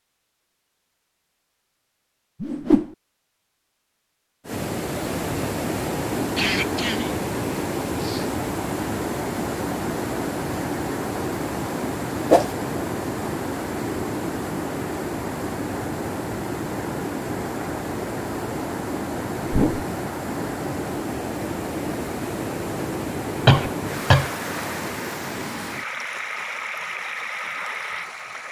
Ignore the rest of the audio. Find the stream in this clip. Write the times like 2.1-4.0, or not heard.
4.5-28.4.